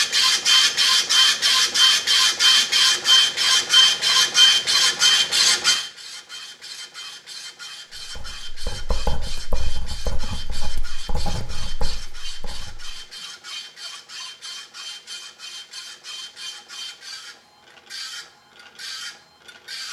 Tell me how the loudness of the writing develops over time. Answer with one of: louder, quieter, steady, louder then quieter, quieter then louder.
quieter.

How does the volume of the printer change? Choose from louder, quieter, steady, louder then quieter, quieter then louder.
quieter.